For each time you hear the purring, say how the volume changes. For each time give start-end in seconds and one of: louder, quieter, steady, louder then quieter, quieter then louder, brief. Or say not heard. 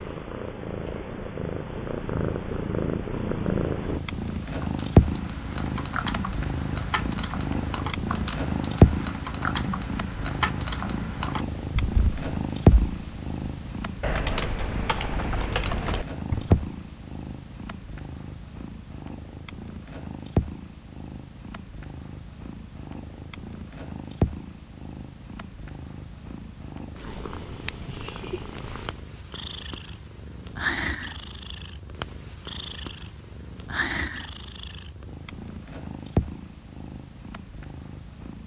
0.0-38.4 quieter.